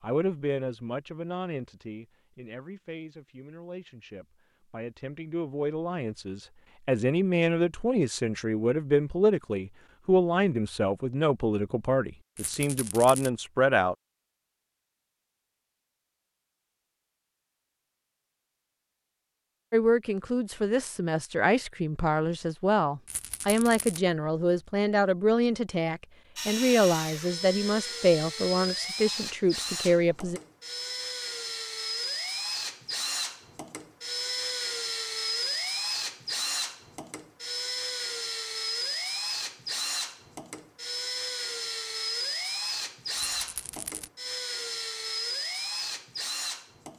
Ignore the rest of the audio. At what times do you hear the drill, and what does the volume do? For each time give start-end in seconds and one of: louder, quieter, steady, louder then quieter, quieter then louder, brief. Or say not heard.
26.4-46.9 steady.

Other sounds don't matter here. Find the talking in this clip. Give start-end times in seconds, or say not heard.
0.0-13.9, 19.7-30.4.